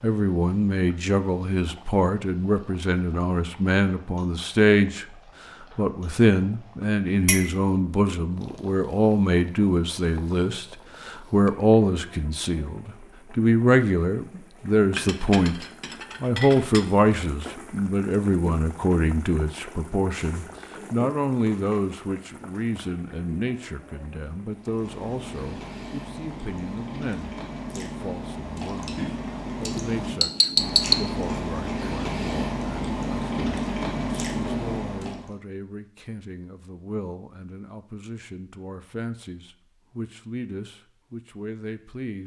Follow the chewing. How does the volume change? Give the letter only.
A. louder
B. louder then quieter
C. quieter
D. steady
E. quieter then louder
A.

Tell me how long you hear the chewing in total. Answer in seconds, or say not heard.
11 s.